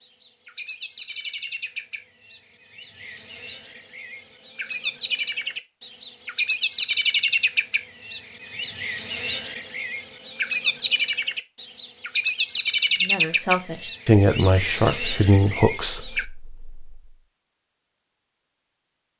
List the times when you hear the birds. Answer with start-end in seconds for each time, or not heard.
0.0-16.2.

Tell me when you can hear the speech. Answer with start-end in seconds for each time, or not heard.
13.0-16.9.